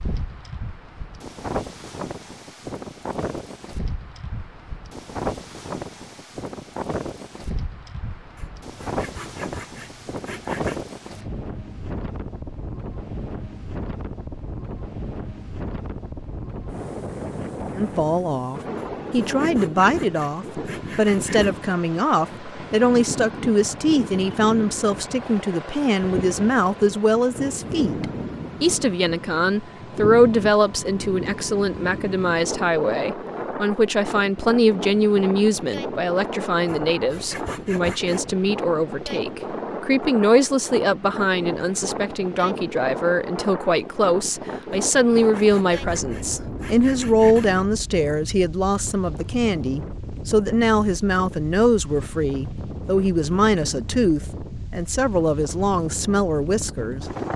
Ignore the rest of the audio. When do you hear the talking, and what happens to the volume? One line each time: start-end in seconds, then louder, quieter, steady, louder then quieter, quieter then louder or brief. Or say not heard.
17.8-57.0 steady.